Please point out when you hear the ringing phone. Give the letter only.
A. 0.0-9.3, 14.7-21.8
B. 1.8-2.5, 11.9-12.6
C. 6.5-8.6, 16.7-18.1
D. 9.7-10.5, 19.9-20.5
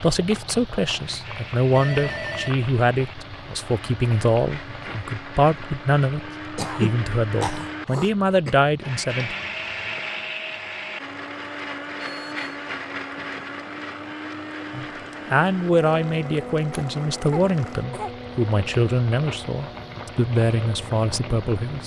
B.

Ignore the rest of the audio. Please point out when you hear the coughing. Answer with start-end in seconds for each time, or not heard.
6.5-8.6, 16.7-18.1.